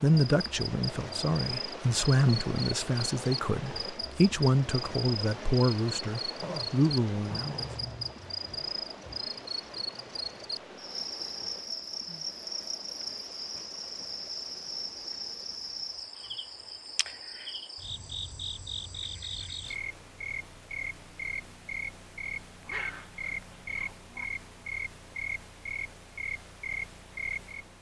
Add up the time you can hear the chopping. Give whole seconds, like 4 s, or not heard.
not heard.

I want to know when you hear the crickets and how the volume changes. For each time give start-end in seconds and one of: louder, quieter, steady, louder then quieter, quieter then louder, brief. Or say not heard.
0.2-27.7 steady.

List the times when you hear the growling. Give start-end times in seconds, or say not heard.
6.4-8.2, 22.6-24.2.